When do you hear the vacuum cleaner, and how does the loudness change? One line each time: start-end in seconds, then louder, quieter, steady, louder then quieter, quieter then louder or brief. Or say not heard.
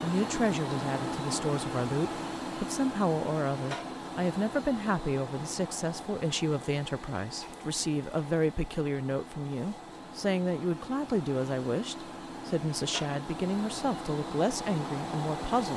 0.0-15.7 quieter then louder.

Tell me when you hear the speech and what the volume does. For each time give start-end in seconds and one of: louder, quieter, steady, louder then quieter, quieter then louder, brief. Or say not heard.
0.0-15.7 steady.